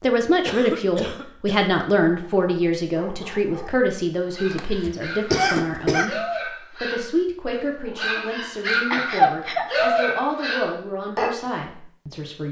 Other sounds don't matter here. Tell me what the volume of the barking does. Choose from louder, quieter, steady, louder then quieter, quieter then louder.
louder.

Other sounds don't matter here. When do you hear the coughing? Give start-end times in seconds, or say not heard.
0.5-1.6, 4.5-6.0, 8.9-9.7.